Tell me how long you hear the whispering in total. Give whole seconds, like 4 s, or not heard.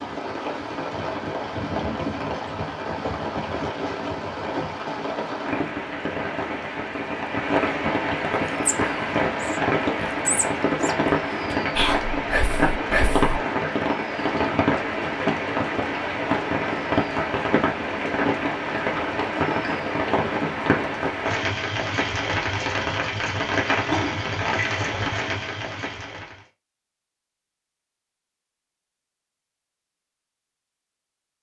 5 s.